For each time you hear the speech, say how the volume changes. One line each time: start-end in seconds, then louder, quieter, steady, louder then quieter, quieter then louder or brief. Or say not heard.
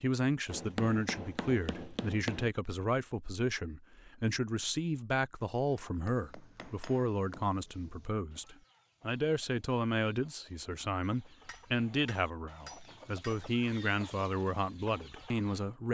0.0-15.8 steady.